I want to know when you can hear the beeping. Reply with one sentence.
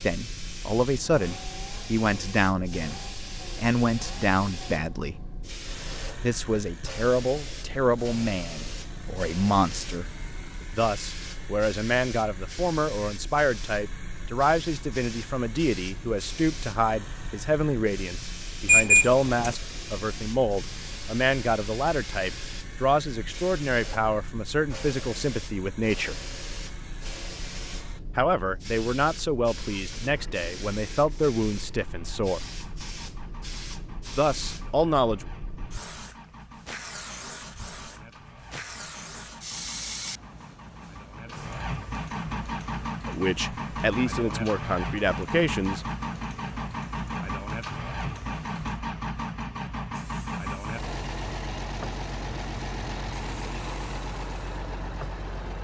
You can hear the beeping from 18.6 to 19.6 s.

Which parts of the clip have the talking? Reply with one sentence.
You can hear the talking from 0.0 to 5.2 s, from 6.2 to 10.1 s, from 10.8 to 26.1 s, from 28.1 to 32.4 s, from 34.1 to 35.2 s and from 43.0 to 45.9 s.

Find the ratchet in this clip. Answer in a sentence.
The ratchet can't be heard in this clip.